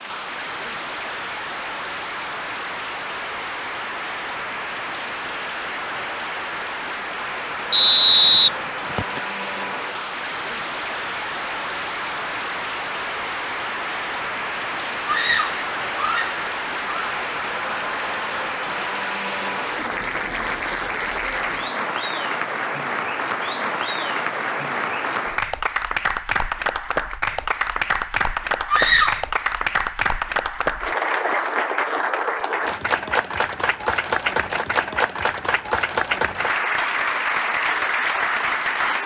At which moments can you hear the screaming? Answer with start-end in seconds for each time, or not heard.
15.1-17.2, 28.6-29.2.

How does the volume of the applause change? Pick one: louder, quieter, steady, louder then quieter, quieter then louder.
louder.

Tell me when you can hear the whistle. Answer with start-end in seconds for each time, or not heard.
7.7-9.2.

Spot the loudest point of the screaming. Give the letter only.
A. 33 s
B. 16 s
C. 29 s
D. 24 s
C.